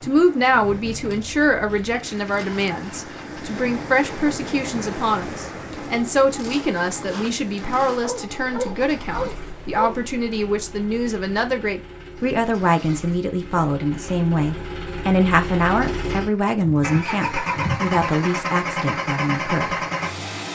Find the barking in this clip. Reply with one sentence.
The barking can be heard from 8.0 to 9.9 s.